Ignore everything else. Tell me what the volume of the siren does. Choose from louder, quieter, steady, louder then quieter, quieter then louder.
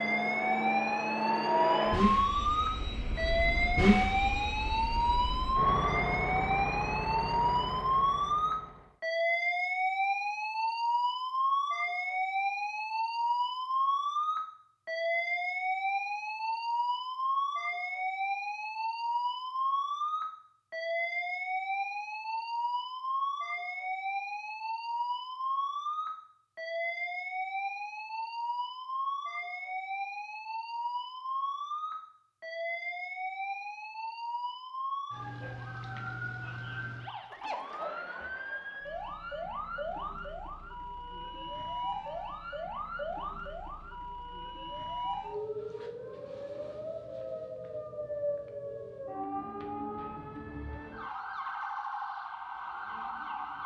quieter.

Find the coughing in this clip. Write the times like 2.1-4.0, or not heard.
not heard.